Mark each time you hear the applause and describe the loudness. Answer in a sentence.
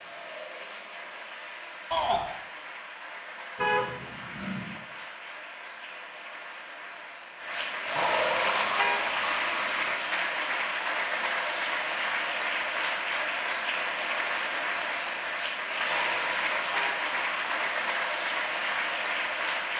The applause can be heard from 0.0 to 19.7 s, getting louder.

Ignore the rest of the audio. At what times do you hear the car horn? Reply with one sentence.
You can hear the car horn from 3.5 to 4.8 s, from 8.0 to 9.9 s and from 15.9 to 17.9 s.